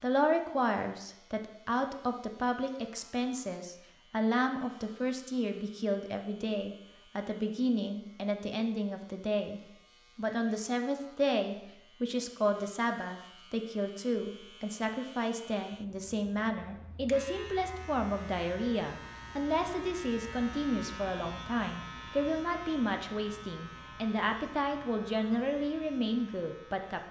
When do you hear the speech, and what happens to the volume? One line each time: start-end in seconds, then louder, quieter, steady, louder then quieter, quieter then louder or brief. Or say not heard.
0.0-27.0 steady.